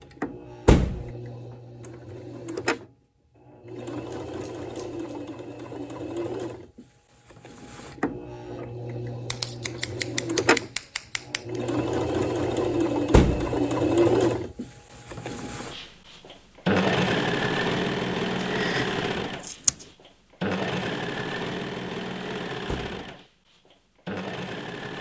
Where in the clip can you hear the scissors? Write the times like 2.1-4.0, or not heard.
4.1-5.1, 9.2-11.6, 18.5-19.9.